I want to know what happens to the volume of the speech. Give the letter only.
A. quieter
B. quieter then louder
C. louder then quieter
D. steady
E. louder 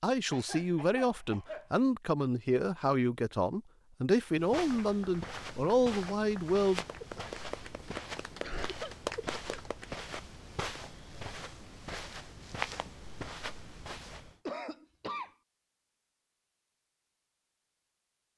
D.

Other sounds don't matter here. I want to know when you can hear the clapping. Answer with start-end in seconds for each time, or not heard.
4.6-10.2.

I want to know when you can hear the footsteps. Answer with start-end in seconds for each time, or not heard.
4.3-14.3.